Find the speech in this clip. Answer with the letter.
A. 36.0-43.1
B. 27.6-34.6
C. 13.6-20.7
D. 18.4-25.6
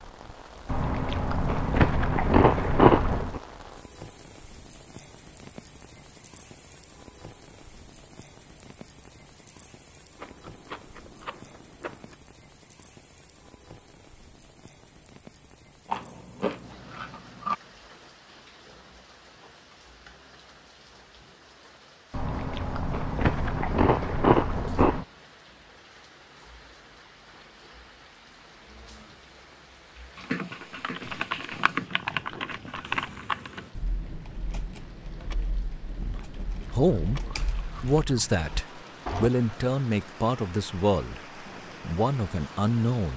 A.